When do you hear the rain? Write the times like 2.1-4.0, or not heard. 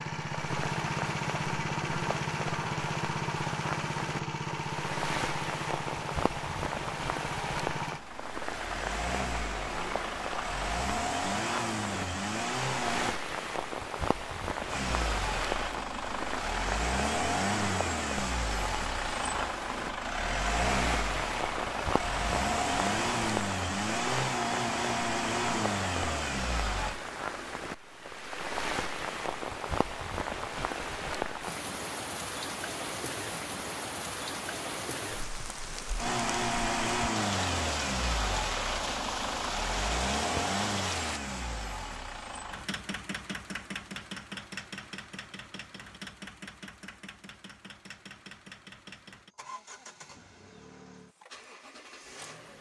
0.2-41.2.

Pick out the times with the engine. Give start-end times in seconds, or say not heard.
0.0-13.2, 14.7-27.0, 36.0-52.5.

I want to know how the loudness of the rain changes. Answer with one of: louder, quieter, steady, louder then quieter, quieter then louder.
steady.